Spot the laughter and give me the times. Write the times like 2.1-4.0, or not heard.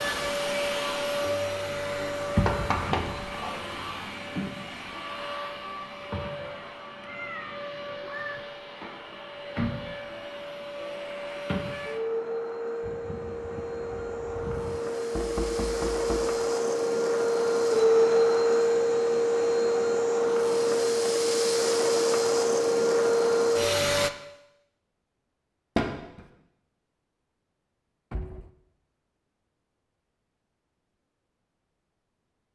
not heard.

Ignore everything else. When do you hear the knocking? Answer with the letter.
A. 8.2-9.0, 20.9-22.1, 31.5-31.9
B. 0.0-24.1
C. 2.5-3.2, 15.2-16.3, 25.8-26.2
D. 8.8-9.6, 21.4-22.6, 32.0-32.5
C.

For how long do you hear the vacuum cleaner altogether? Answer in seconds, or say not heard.
24 s.